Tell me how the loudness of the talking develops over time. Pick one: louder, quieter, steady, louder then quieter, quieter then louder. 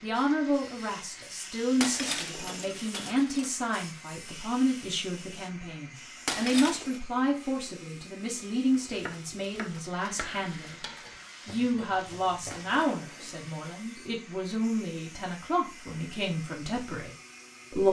steady.